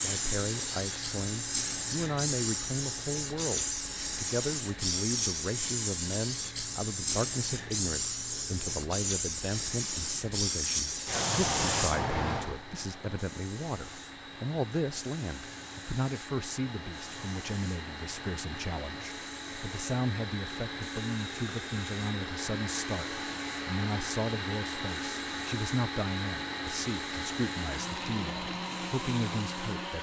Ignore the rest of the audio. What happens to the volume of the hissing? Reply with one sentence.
The loudness of the hissing goes down.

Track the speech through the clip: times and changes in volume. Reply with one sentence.
The speech can be heard from 0.0 to 29.9 s, at a steady volume.